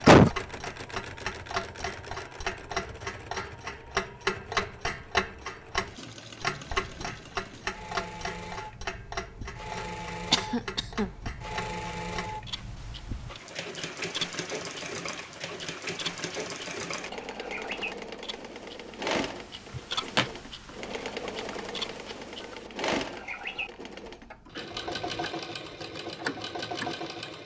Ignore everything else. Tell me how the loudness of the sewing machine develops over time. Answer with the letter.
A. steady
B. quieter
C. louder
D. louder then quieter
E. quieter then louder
C.